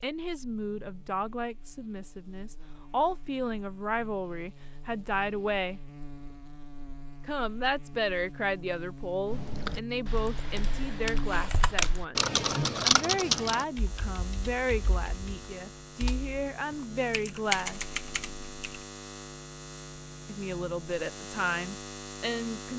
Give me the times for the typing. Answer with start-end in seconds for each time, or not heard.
9.2-18.9.